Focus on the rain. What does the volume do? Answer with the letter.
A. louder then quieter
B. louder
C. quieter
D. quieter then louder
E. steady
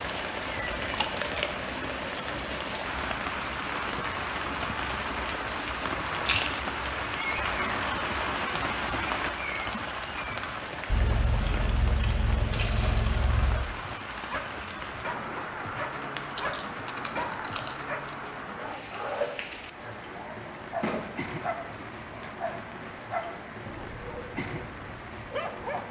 C.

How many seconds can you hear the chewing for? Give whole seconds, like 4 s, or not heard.
8 s.